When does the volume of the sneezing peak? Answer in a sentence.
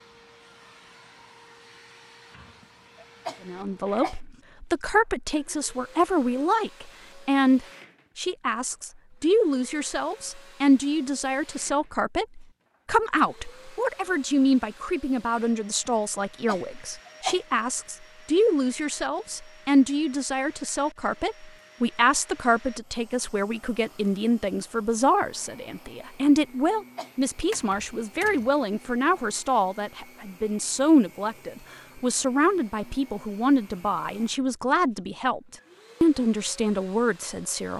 The loudest moment of the sneezing is at 17 seconds.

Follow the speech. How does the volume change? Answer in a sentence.
The volume of the speech stays about the same.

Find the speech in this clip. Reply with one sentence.
You can hear the speech from 3.5 to 37.7 s.